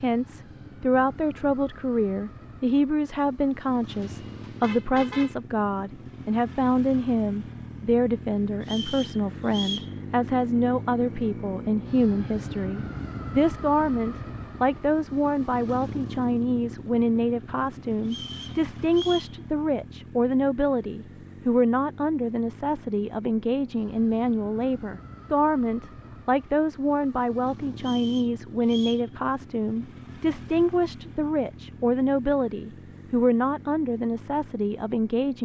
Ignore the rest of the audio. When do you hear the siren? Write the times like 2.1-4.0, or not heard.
not heard.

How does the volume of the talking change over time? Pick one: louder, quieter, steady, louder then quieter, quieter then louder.
steady.